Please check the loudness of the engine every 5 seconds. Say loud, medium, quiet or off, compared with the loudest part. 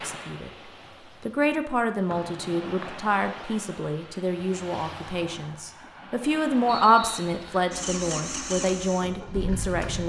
off, loud.